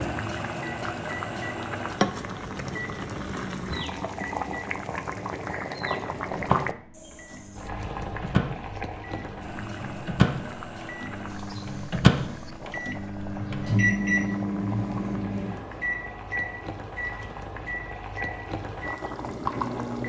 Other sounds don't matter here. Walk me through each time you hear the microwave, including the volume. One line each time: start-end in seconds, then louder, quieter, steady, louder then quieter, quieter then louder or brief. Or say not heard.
0.0-20.0 louder then quieter.